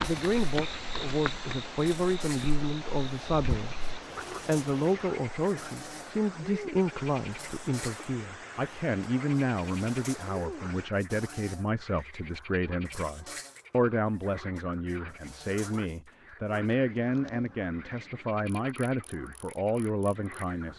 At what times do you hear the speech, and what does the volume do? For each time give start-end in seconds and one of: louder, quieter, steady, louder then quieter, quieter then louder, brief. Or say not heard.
0.0-20.7 steady.